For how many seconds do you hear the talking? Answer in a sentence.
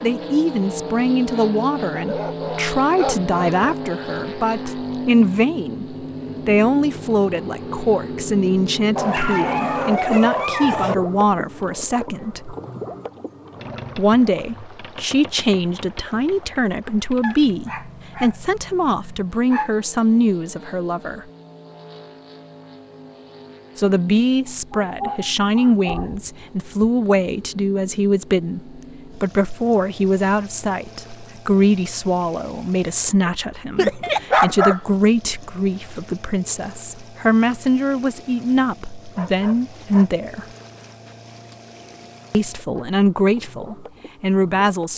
The talking can be heard for 39 seconds in total.